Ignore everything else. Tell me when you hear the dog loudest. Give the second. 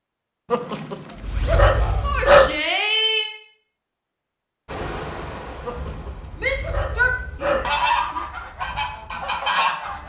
2 s.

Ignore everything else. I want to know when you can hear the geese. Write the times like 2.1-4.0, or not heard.
7.6-10.0.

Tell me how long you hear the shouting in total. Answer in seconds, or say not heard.
3 s.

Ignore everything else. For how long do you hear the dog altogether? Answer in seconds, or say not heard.
4 s.